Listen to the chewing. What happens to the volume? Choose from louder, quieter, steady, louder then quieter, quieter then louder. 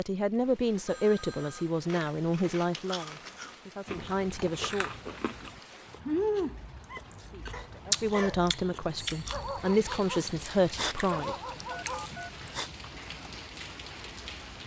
louder then quieter.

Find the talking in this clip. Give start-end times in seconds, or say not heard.
0.0-4.9, 7.2-11.3.